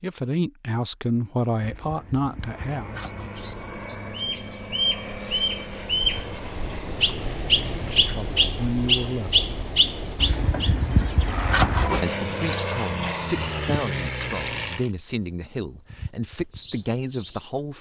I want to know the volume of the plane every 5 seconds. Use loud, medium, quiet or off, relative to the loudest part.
medium, medium, loud, off.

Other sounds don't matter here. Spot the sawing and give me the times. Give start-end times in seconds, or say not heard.
1.6-3.5, 10.2-12.1.